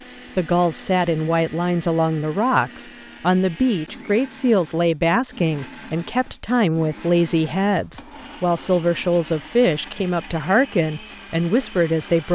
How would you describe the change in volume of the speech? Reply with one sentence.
The volume of the speech stays about the same.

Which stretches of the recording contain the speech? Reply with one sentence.
You can hear the speech from 0.3 to 12.3 s.